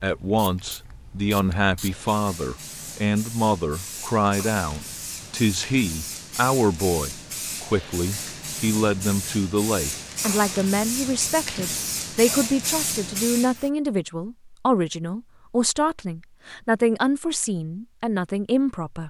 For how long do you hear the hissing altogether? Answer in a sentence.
The hissing can be heard for 14 seconds in total.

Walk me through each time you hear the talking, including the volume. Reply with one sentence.
You can hear the talking from 0.0 to 19.0 s, at a steady volume.